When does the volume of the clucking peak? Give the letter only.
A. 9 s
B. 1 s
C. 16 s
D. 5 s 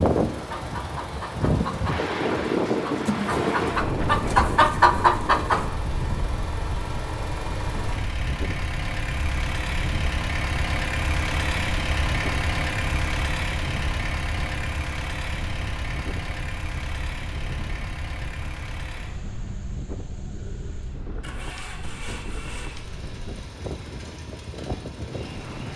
D.